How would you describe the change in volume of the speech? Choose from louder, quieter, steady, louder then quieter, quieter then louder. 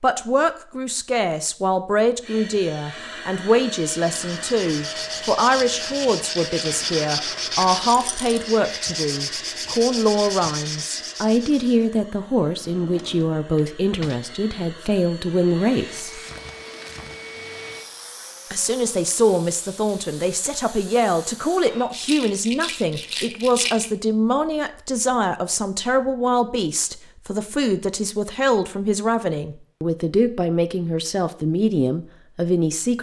steady.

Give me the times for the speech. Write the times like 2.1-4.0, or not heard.
0.0-16.2, 18.5-32.9.